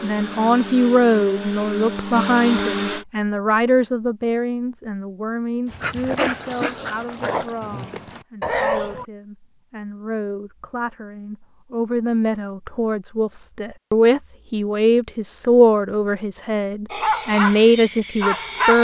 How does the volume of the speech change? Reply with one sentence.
The loudness of the speech goes down, then up.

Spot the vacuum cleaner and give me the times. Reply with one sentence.
The vacuum cleaner can be heard from 0.0 to 3.0 s.